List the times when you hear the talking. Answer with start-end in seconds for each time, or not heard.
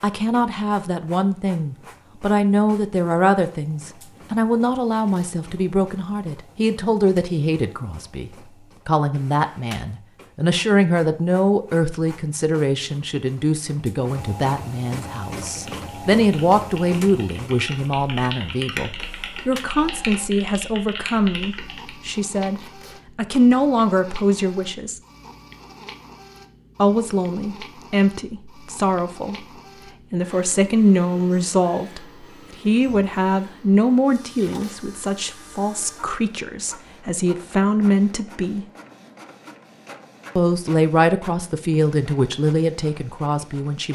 0.0-25.0, 26.8-29.4, 30.1-38.6, 40.4-43.9.